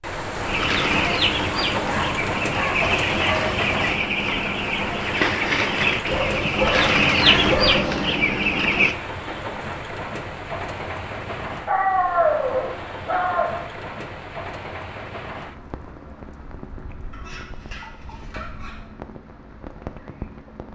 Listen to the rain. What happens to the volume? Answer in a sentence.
The volume of the rain goes down.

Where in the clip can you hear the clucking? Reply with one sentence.
You can hear the clucking from 0.5 to 8.9 s.